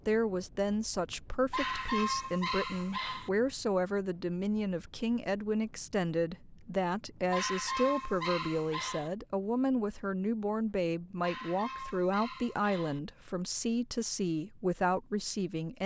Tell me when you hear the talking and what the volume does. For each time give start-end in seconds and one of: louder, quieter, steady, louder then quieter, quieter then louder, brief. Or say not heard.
0.1-15.8 steady.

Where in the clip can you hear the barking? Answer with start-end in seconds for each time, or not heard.
1.5-3.3, 7.3-9.1, 11.2-13.0.